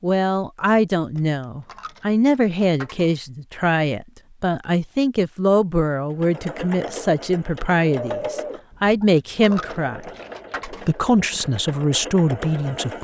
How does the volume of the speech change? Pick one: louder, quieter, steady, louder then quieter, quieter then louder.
steady.